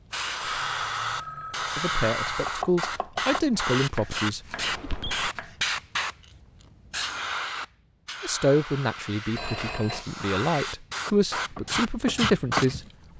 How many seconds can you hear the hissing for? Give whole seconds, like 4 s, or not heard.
13 s.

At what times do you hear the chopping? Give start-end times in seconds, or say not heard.
2.2-5.7, 11.6-12.9.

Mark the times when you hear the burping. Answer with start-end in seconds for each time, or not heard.
not heard.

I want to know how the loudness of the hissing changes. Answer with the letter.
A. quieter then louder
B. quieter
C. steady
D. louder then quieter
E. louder
A.